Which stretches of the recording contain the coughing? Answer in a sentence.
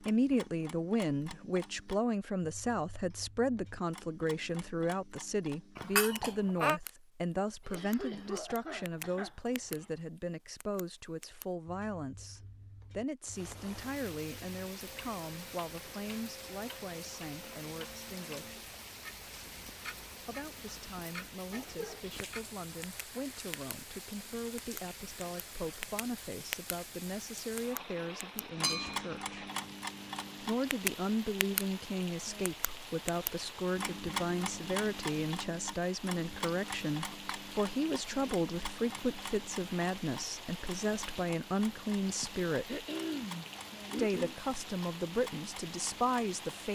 The coughing can be heard from 7.6 to 9.9 s, from 21.5 to 22.2 s and from 42.0 to 44.4 s.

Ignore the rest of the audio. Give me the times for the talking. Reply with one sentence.
You can hear the talking from 0.0 to 18.6 s, from 20.2 to 29.4 s, from 30.4 to 42.9 s and from 44.0 to 46.7 s.